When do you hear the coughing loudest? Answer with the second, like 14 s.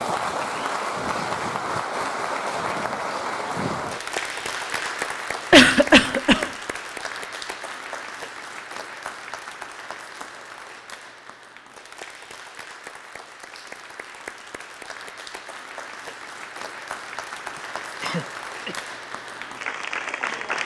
6 s.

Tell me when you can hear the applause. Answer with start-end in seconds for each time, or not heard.
0.0-20.6.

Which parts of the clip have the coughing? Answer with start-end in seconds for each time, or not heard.
5.5-6.5, 18.0-18.8.